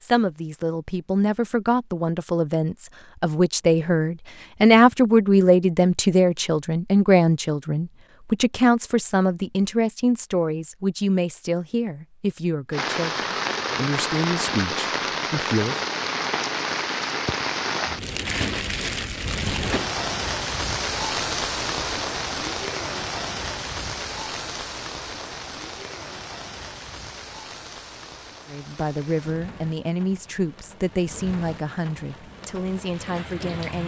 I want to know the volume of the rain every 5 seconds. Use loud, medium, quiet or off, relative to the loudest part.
off, off, loud, loud, loud, quiet, quiet.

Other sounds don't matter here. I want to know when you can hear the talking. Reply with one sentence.
You can hear the talking from 0.0 to 15.8 s and from 28.4 to 33.8 s.